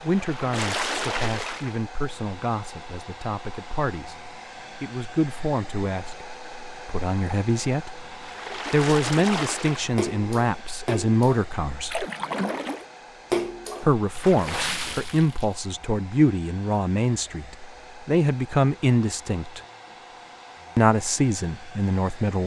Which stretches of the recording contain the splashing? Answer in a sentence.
The splashing can be heard from 0.0 to 1.8 s and from 8.2 to 15.6 s.